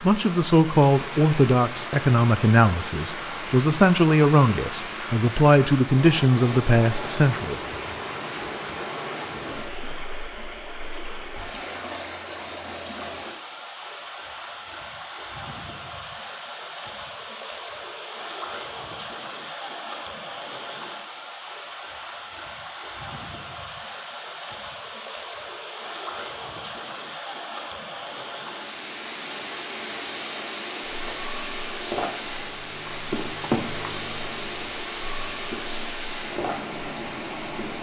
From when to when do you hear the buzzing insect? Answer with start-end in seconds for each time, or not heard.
30.9-37.7.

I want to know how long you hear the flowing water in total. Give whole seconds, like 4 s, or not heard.
38 s.